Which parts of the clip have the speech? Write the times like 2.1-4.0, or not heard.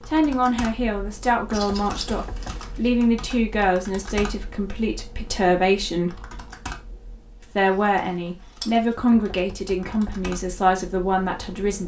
0.1-6.2, 7.5-11.8.